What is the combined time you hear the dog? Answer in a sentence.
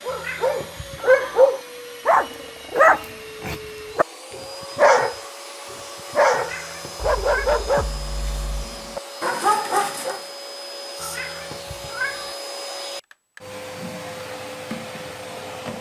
You can hear the dog for 10 seconds altogether.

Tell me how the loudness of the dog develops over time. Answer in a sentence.
The volume of the dog goes down.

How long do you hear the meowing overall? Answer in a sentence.
The meowing can be heard for 4 seconds in total.